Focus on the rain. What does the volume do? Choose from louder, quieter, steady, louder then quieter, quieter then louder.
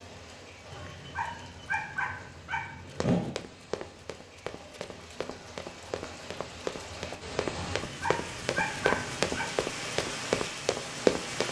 louder.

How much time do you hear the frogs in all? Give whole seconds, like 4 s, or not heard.
not heard.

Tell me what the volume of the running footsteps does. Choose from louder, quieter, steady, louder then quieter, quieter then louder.
louder.